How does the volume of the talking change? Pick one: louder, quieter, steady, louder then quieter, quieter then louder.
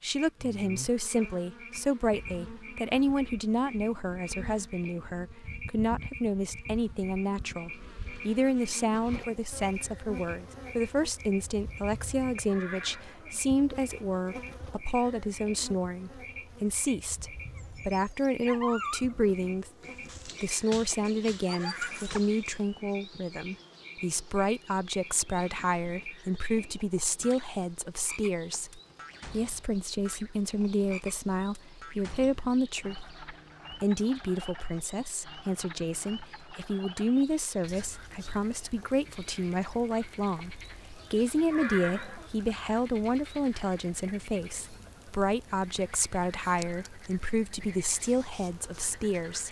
steady.